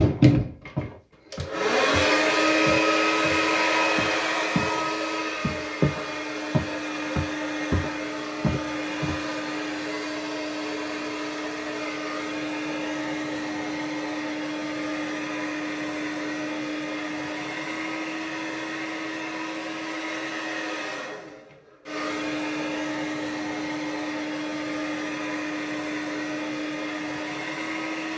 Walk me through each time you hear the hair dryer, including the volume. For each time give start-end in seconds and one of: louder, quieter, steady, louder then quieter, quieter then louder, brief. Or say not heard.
0.0-28.1 quieter.